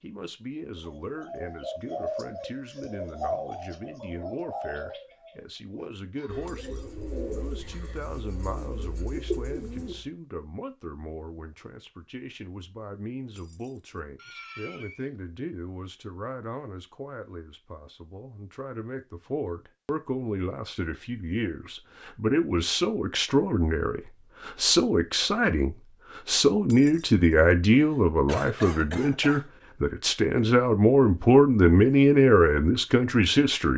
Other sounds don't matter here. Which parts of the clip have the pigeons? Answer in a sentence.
The pigeons can be heard from 0.8 to 10.1 s.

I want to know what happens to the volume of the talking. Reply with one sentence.
The loudness of the talking goes up.